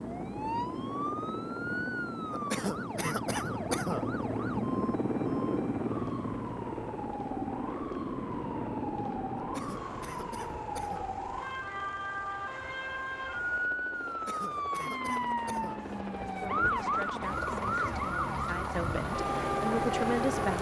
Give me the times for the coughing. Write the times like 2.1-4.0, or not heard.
2.3-4.1, 9.3-11.2, 14.1-15.8.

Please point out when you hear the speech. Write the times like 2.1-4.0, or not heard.
16.1-20.5.